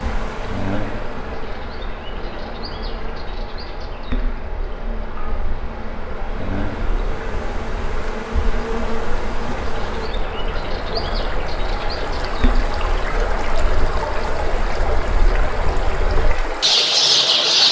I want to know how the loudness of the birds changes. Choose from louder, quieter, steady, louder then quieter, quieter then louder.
louder.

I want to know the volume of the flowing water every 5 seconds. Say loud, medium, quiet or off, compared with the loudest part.
medium, medium, loud, loud.